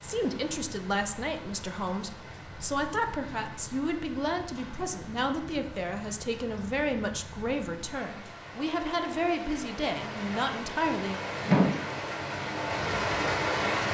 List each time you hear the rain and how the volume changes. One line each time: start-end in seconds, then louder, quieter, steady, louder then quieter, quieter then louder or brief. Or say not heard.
0.0-13.8 louder.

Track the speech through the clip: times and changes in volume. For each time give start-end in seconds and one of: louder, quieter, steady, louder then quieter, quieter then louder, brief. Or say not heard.
0.0-11.2 steady.